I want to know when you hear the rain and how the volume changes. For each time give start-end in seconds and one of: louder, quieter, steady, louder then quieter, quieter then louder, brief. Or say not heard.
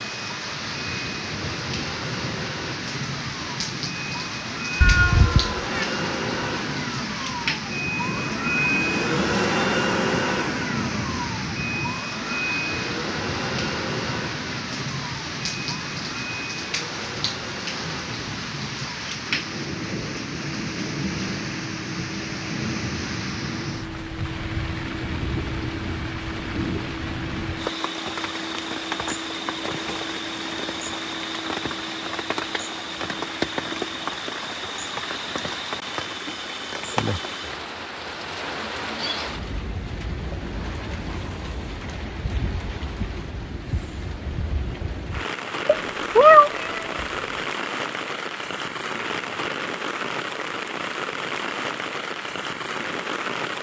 0.0-53.5 steady.